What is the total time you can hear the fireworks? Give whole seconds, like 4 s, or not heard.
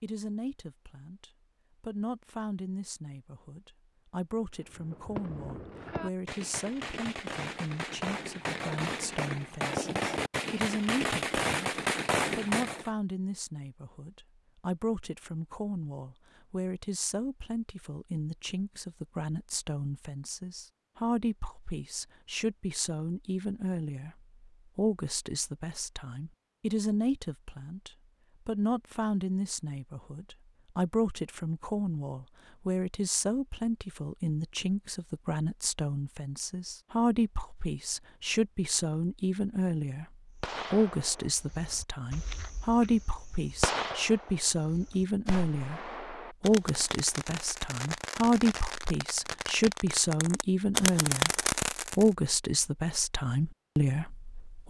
20 s.